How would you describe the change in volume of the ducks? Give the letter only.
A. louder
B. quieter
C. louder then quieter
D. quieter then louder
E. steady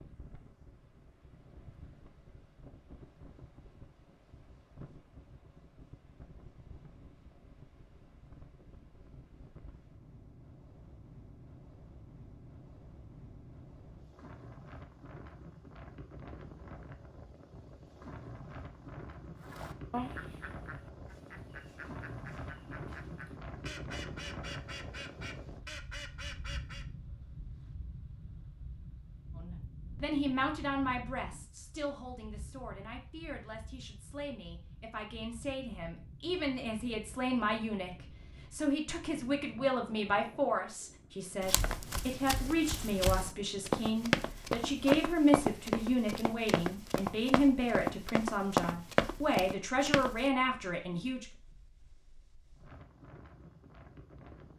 D.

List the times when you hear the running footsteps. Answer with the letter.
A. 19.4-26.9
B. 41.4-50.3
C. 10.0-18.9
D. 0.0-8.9
B.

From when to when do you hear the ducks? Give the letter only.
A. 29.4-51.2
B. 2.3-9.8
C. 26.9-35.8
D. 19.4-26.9
D.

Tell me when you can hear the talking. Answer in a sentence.
You can hear the talking from 29.4 to 51.2 s.